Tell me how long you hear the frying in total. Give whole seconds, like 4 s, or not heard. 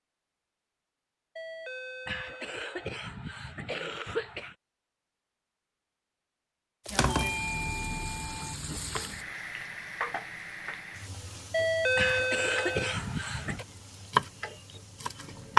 9 s.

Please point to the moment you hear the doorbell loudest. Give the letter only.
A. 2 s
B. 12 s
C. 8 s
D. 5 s
B.